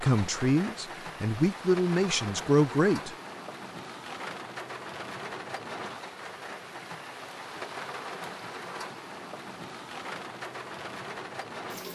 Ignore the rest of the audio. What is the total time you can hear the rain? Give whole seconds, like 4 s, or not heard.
12 s.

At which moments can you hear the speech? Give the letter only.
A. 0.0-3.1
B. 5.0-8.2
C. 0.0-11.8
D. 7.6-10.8
A.